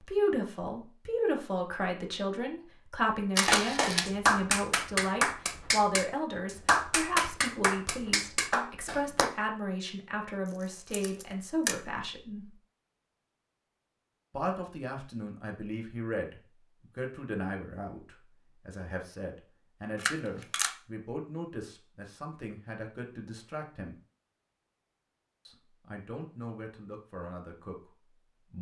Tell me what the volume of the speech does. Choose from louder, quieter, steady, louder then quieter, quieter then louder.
quieter.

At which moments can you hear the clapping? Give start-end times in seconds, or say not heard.
3.5-9.3.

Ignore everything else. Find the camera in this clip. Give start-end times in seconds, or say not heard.
3.4-4.1, 10.7-11.8, 19.9-20.7.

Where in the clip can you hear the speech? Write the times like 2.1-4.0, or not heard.
0.0-12.6, 14.3-23.9, 25.4-28.5.